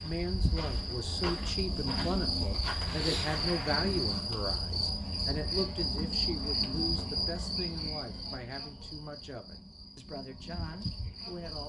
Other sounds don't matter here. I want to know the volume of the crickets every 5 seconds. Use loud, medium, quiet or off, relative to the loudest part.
loud, loud, medium.